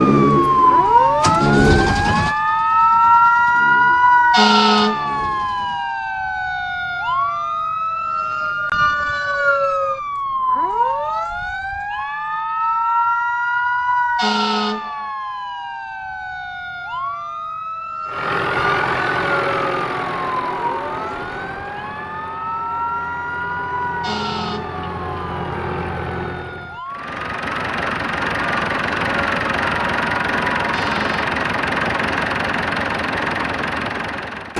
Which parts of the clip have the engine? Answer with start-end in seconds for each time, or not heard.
0.0-6.0, 18.1-34.5.